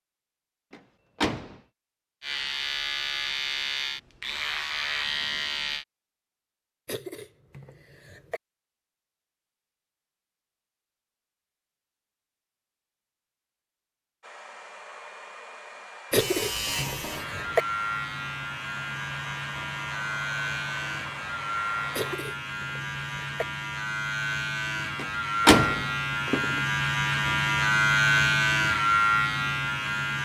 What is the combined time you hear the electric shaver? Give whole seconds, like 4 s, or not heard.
18 s.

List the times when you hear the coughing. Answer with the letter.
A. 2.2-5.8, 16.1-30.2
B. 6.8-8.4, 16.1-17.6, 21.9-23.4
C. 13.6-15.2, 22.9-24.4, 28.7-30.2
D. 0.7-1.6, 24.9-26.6
B.